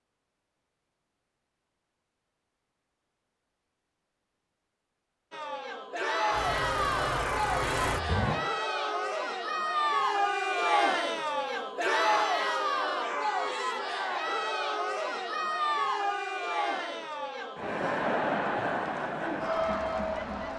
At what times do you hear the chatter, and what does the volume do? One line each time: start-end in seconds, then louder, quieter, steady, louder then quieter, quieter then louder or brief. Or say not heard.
5.3-20.5 steady.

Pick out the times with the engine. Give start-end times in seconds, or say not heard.
6.3-8.4.